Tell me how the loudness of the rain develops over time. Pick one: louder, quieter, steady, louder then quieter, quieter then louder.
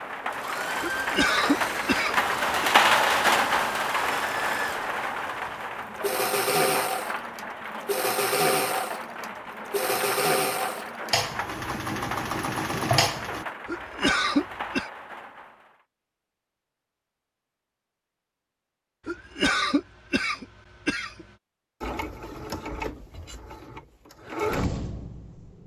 quieter.